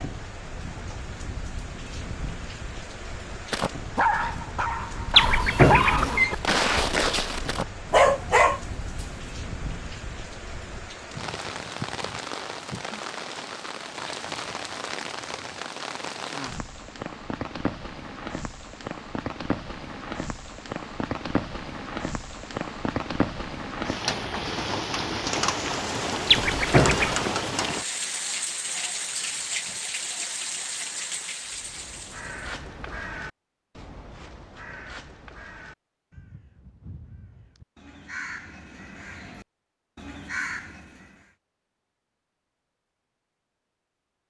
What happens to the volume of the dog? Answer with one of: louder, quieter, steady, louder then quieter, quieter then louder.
louder.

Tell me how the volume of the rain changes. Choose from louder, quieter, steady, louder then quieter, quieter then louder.
louder.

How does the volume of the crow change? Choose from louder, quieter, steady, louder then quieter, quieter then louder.
quieter then louder.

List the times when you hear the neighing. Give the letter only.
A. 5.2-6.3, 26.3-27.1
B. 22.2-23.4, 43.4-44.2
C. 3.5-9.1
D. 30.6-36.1
A.